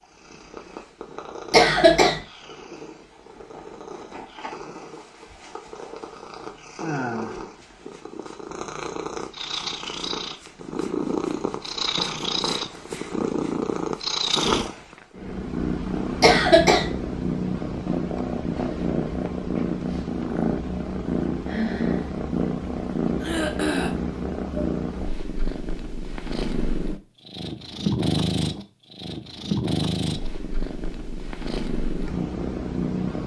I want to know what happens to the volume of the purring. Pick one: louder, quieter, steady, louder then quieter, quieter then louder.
louder.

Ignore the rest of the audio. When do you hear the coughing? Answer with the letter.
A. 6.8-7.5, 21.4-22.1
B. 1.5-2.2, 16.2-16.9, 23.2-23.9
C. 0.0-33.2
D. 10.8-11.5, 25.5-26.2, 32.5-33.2
B.